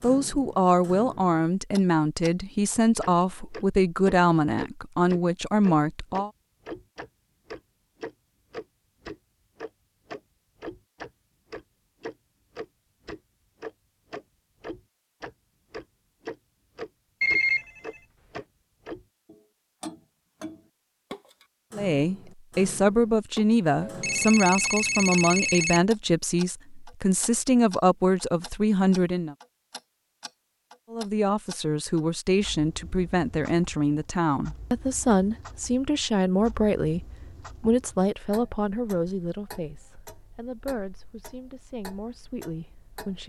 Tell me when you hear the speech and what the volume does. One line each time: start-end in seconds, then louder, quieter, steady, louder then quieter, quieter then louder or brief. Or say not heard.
0.0-6.3 steady
21.7-29.4 steady
30.9-43.2 quieter.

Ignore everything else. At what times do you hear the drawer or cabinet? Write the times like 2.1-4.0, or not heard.
not heard.